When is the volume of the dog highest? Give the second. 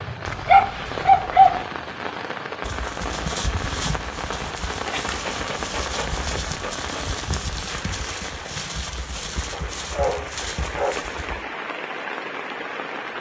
1 s.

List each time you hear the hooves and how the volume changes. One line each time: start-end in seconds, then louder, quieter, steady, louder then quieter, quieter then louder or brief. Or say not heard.
2.6-11.4 steady.